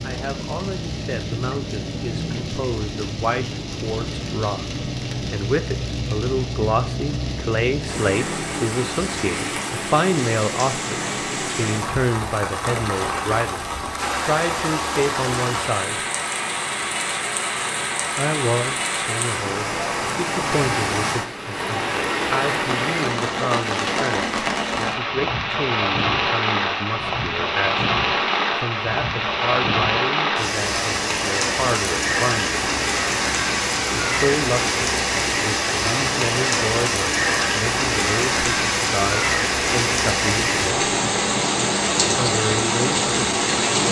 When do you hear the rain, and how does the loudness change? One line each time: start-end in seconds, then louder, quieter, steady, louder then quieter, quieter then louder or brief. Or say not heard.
0.0-43.8 louder.